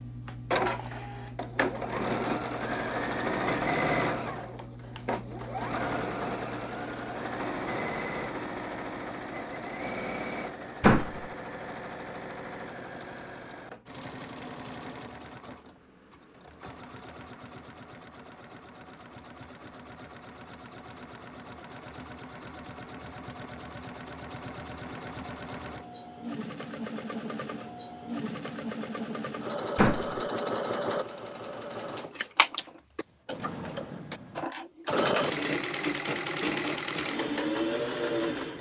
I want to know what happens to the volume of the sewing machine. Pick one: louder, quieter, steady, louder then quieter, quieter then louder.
quieter then louder.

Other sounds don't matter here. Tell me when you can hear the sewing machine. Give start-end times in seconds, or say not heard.
0.0-38.5.